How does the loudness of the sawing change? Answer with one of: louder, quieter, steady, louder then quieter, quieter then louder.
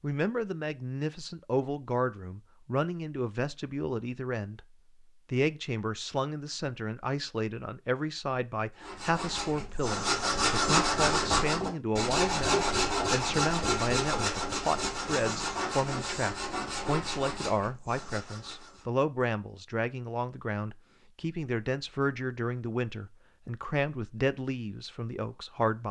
quieter.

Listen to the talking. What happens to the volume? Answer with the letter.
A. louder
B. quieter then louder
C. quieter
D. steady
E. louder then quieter
D.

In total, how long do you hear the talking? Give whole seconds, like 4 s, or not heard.
25 s.